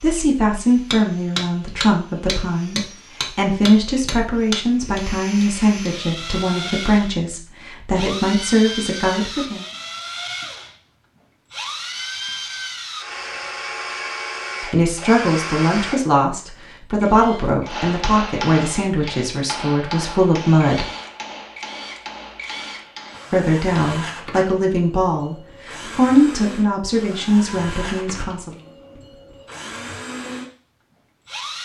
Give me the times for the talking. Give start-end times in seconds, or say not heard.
0.0-9.7, 14.6-20.9, 23.3-28.5.